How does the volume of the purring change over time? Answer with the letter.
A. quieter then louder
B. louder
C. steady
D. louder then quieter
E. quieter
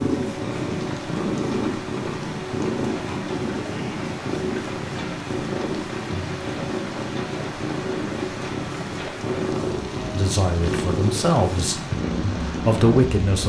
C.